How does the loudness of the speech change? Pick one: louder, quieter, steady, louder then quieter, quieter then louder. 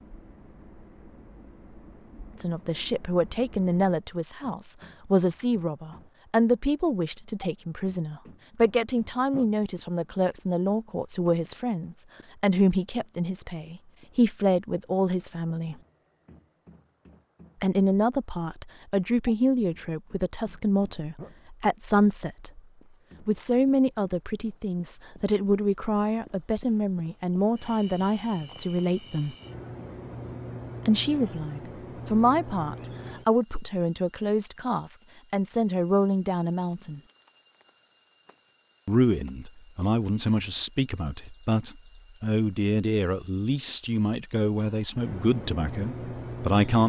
steady.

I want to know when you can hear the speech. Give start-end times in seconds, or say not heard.
2.4-15.8, 17.6-22.6, 23.2-29.4, 30.9-37.0, 38.9-46.8.